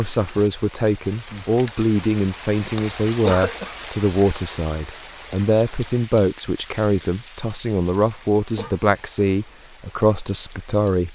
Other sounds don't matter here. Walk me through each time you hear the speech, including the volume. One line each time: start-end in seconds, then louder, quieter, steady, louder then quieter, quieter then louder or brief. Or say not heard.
0.0-11.1 steady.